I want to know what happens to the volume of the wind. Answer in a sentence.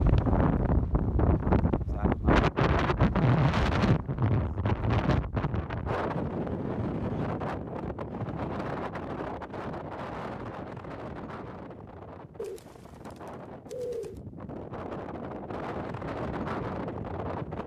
The volume of the wind goes down, then up.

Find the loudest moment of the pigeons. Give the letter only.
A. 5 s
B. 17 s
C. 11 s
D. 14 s
D.